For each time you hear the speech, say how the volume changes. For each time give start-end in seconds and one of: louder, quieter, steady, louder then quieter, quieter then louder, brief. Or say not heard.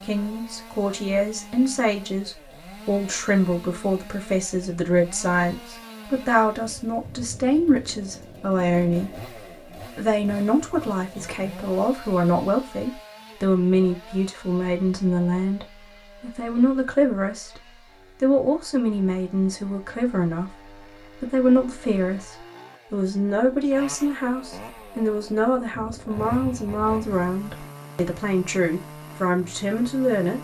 0.0-17.6 steady
18.2-30.3 steady.